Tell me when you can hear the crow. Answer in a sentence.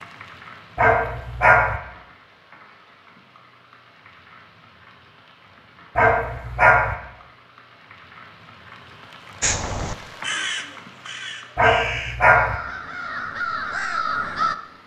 You can hear the crow from 9.4 to 14.6 s.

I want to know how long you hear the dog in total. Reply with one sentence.
You can hear the dog for 3 seconds altogether.